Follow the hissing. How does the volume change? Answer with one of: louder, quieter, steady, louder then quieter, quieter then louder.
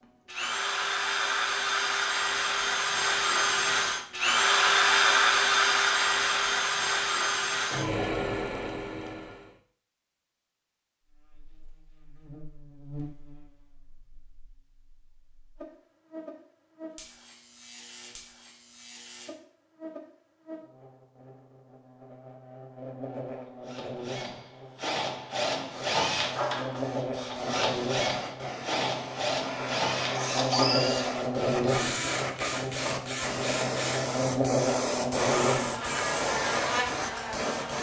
louder.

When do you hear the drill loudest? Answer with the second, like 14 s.
5 s.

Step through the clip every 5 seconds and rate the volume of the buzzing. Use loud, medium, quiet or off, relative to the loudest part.
off, off, quiet, quiet, quiet, medium, loud, loud.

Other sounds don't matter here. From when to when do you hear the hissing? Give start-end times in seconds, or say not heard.
25.6-37.7.